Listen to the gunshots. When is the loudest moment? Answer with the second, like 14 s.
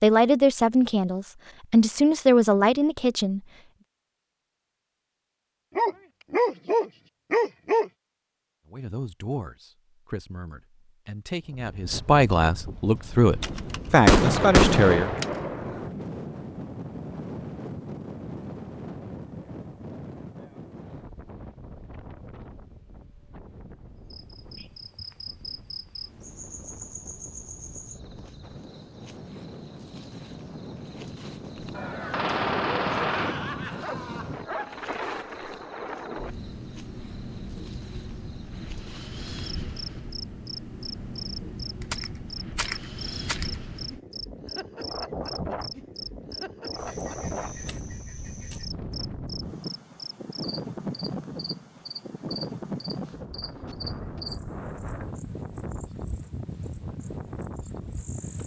14 s.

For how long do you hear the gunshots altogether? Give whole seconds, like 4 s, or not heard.
6 s.